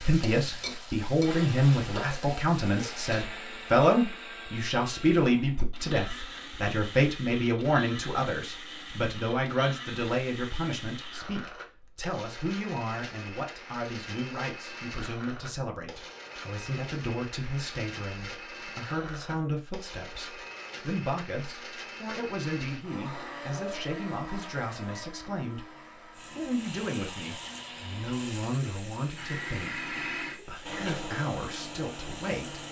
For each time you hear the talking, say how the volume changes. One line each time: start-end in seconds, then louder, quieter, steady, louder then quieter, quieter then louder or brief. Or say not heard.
0.0-32.6 quieter.